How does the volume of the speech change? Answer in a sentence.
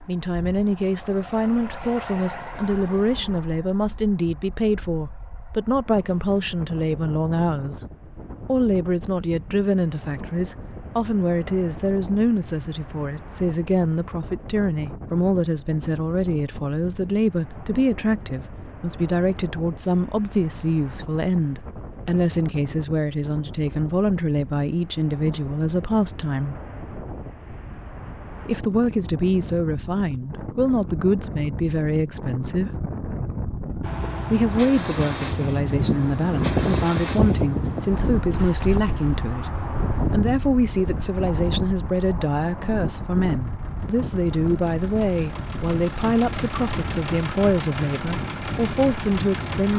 The volume of the speech stays about the same.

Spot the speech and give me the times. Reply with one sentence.
The speech can be heard from 0.1 to 7.8 s, from 8.4 to 26.6 s, from 28.4 to 32.7 s, from 34.3 to 39.5 s and from 40.1 to 49.7 s.